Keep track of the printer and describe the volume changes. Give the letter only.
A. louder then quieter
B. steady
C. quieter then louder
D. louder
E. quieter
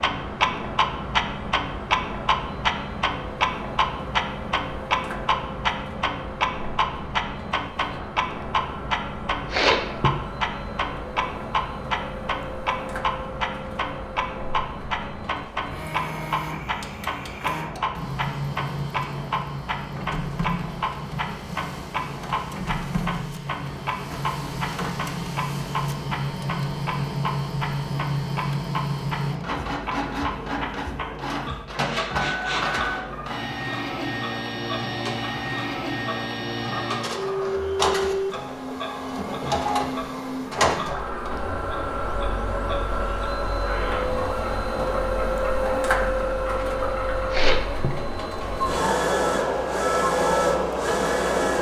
D.